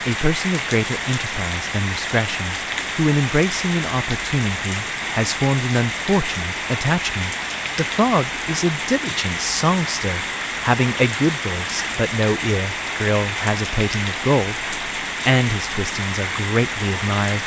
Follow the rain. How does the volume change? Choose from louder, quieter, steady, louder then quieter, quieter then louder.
steady.